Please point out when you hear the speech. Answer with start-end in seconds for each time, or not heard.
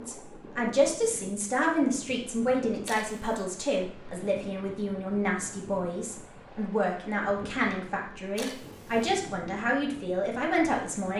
0.0-11.1.